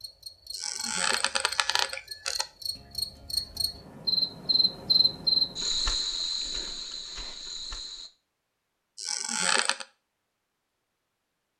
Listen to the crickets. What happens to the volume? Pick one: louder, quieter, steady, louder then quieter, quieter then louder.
louder then quieter.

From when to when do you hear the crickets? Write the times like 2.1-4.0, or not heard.
0.0-8.1.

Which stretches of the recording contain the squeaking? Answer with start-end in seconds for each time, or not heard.
0.5-2.5, 8.9-9.8.